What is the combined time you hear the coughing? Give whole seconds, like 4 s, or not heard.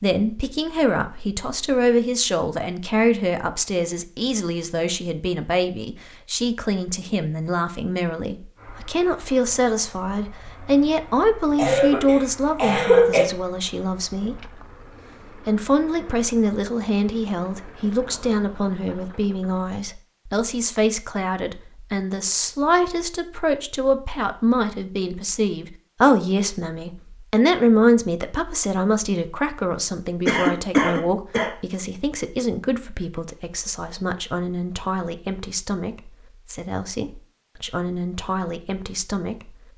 3 s.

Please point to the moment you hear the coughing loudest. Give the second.
13 s.